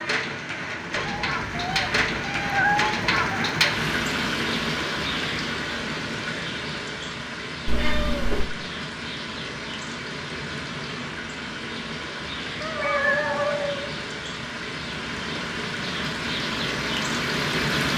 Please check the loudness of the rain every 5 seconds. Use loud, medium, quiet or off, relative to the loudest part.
loud, medium, medium, loud.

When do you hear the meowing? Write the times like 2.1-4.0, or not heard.
0.9-3.5, 7.7-8.5, 12.6-13.8.